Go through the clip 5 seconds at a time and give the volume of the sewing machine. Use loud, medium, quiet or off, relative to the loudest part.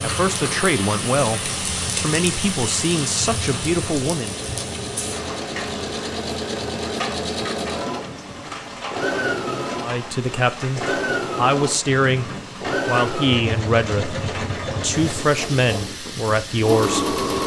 medium, loud, loud, loud.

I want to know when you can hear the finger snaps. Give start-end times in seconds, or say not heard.
not heard.